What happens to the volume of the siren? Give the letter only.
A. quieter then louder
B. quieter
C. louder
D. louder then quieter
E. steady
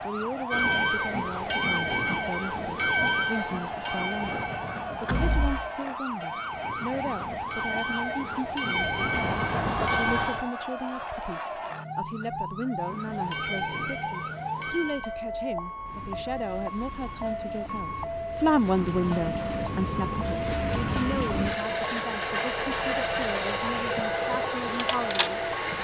E.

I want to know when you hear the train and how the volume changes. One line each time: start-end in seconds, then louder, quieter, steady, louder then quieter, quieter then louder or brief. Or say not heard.
0.0-10.5 quieter then louder
12.8-25.7 quieter then louder.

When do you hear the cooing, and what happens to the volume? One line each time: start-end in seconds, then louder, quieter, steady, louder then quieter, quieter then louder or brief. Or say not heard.
not heard.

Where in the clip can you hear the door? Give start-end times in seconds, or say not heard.
5.0-5.7, 8.7-10.5, 18.8-20.4.